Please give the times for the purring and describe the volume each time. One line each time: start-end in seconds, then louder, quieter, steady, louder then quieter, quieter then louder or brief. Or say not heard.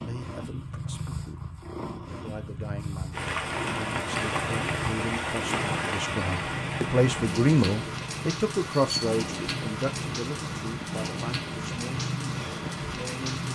0.0-13.4 steady.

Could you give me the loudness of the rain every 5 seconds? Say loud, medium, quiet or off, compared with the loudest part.
loud, loud, medium.